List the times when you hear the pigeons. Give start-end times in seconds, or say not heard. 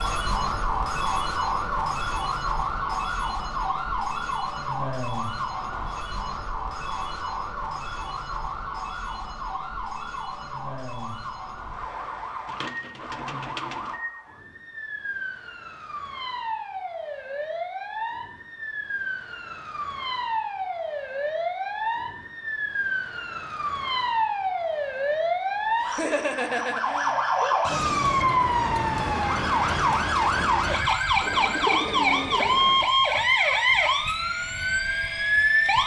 12.4-13.9, 31.2-32.9.